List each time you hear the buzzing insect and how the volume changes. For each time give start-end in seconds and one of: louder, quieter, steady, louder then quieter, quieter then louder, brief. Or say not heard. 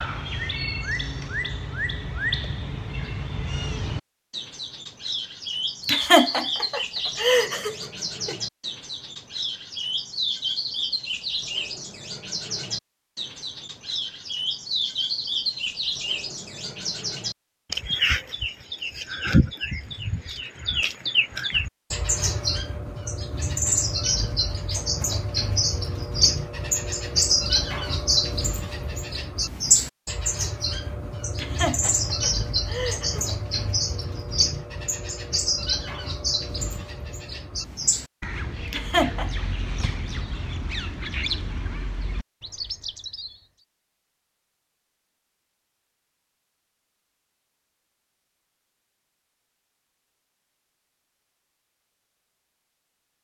not heard.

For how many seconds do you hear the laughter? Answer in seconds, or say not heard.
5 s.